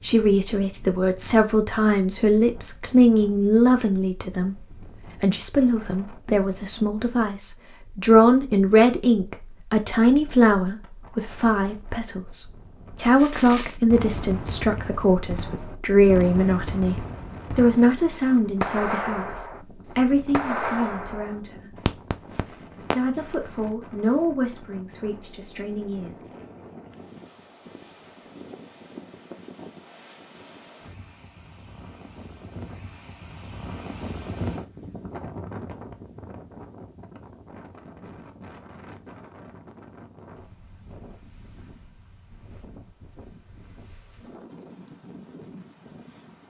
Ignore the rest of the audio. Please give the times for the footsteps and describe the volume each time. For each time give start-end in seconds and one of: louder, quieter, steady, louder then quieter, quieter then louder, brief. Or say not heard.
not heard.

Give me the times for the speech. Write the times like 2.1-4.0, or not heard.
0.0-21.9, 22.9-26.3.